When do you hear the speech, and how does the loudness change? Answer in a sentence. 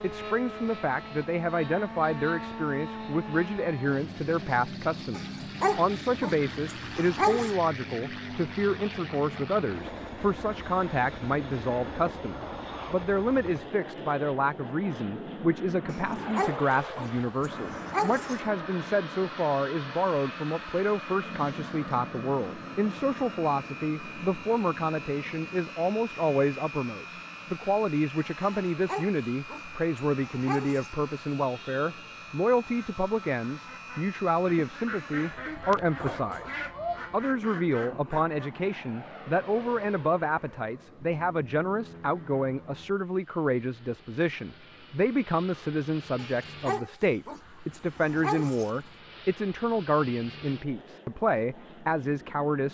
You can hear the speech from 0.0 to 52.6 s, at a steady volume.